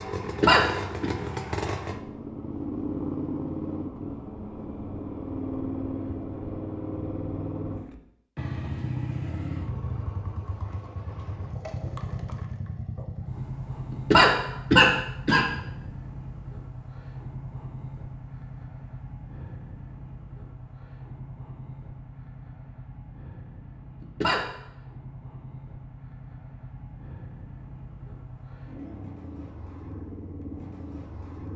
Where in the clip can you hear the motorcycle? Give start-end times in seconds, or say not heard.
0.0-31.5.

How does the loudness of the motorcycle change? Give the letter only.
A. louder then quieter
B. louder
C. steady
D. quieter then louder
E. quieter
E.